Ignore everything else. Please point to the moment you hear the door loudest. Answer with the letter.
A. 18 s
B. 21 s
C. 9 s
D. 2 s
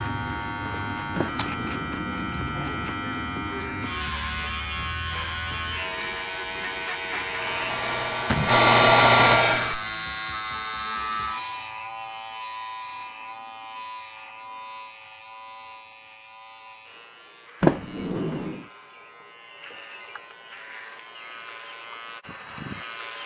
A.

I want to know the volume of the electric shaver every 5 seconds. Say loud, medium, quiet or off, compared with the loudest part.
loud, loud, loud, quiet, medium.